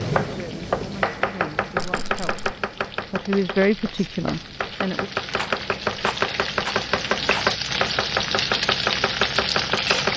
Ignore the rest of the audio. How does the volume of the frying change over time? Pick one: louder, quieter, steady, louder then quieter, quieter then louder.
louder.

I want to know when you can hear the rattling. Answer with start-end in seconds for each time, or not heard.
1.8-2.5, 5.3-7.5.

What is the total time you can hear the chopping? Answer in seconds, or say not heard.
10 s.